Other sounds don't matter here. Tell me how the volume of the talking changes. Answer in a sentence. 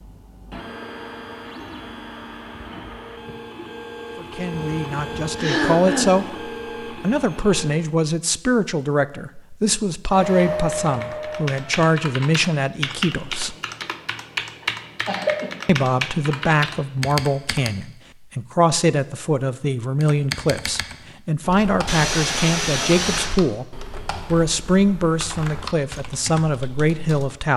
The loudness of the talking stays about the same.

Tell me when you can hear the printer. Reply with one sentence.
You can hear the printer from 0.0 to 8.0 s and from 10.1 to 11.9 s.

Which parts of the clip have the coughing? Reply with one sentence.
You can hear the coughing from 5.3 to 6.2 s, from 14.6 to 15.5 s and from 21.9 to 23.3 s.